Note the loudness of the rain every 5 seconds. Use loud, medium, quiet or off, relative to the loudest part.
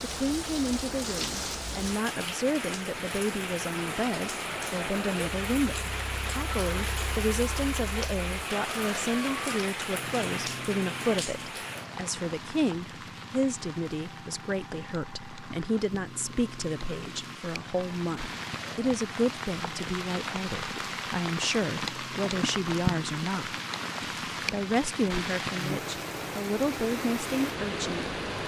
loud, loud, medium, medium, loud, loud.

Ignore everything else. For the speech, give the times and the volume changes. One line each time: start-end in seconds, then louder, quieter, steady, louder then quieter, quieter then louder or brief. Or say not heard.
0.0-28.1 steady.